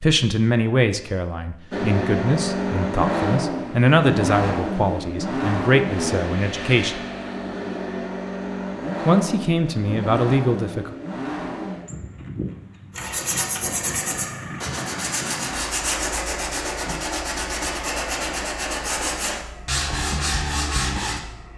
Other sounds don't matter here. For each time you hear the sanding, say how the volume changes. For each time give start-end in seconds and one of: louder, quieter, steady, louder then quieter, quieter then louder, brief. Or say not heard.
12.9-21.2 steady.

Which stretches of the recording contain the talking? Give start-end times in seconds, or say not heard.
0.0-7.0, 9.1-10.9.